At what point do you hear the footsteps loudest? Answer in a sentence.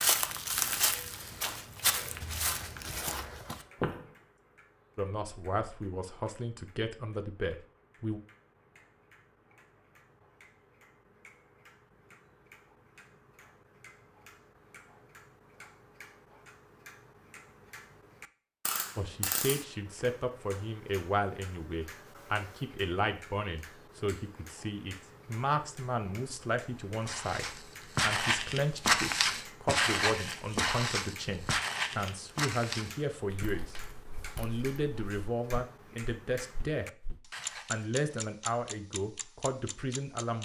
The loudest moment of the footsteps is at 29 seconds.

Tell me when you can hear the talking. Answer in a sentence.
The talking can be heard from 5.0 to 8.2 s, from 18.9 to 33.8 s, from 34.4 to 36.9 s and from 37.6 to 40.3 s.